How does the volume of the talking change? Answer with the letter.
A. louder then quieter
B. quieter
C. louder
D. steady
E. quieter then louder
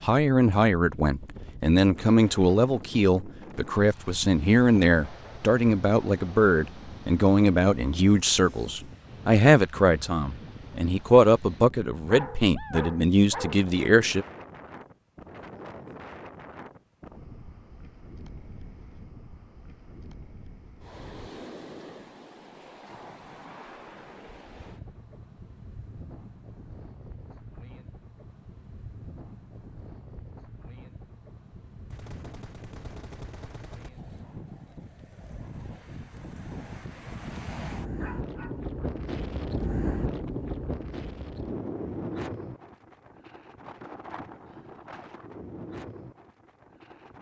D.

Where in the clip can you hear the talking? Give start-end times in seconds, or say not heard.
0.0-14.2.